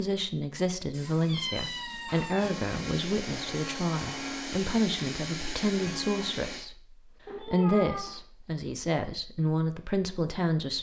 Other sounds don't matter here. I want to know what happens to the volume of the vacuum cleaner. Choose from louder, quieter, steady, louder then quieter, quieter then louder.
steady.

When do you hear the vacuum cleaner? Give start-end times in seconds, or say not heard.
2.4-6.7.